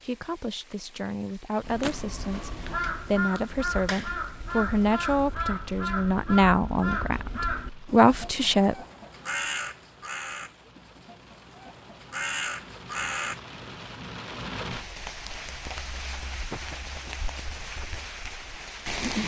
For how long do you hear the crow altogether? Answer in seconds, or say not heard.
12 s.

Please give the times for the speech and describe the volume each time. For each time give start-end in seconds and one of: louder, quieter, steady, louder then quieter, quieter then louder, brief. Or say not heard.
0.0-8.8 louder.